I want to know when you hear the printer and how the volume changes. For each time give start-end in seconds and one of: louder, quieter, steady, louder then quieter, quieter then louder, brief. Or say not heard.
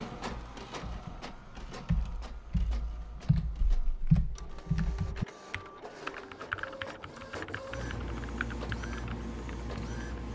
0.0-10.3 quieter then louder.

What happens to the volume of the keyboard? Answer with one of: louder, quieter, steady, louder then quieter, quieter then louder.
louder then quieter.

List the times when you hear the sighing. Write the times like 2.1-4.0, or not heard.
not heard.